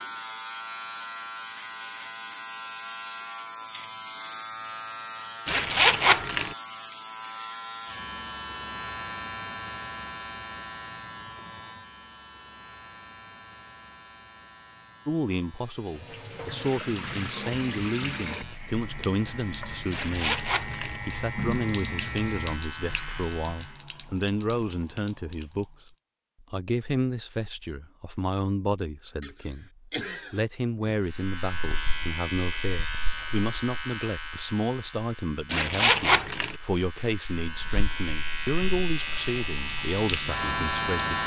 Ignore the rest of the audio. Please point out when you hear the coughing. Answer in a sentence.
The coughing can be heard from 29.2 to 31.0 s.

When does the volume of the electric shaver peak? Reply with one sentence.
The loudest moment of the electric shaver is at 41 seconds.